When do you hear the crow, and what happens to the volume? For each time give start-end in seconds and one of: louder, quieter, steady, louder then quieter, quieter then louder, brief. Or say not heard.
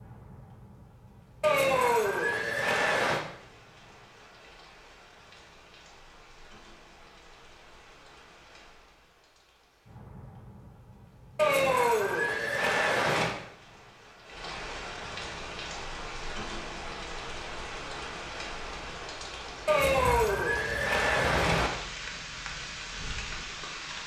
not heard.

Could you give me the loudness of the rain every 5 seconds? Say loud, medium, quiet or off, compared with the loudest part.
quiet, quiet, medium, loud, loud.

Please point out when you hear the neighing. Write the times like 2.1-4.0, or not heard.
1.4-3.2, 11.3-13.3, 19.6-21.7.